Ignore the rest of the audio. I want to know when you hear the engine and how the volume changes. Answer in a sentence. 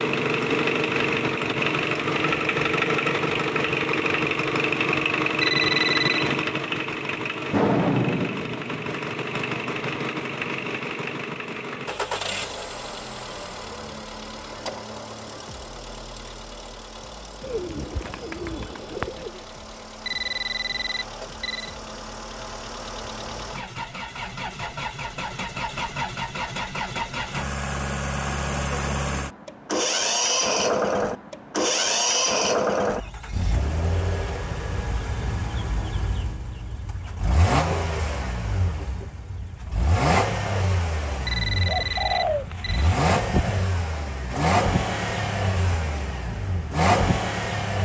You can hear the engine from 0.0 to 47.8 s, getting quieter then louder.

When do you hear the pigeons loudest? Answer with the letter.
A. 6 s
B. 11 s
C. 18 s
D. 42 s
D.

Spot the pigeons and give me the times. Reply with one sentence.
The pigeons can be heard from 17.4 to 19.3 s and from 41.5 to 43.0 s.